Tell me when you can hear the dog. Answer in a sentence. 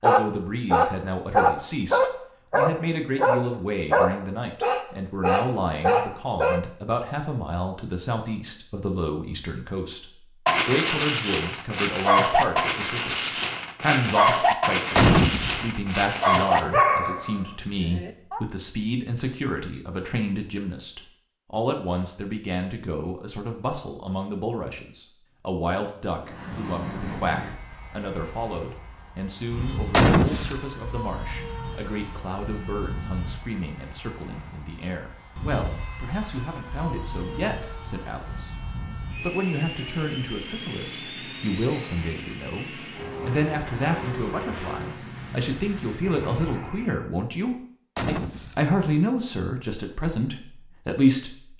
The dog can be heard from 0.0 to 6.6 s and from 10.4 to 18.4 s.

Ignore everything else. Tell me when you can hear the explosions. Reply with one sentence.
The explosions can be heard from 14.9 to 15.7 s, from 29.9 to 30.6 s and from 48.0 to 48.6 s.